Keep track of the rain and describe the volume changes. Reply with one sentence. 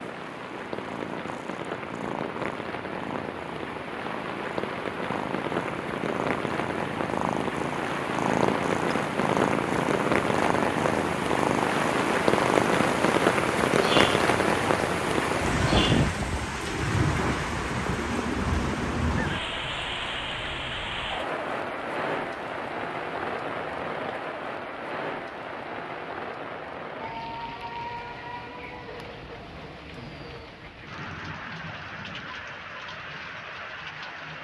The volume of the rain goes up, then down.